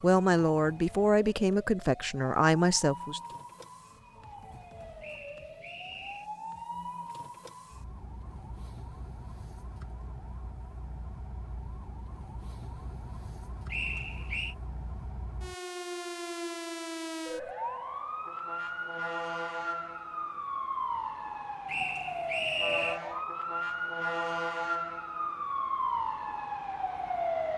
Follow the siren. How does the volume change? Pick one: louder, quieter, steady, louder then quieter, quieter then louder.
louder.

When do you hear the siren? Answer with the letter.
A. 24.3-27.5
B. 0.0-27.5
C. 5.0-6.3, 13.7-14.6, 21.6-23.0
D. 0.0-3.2
B.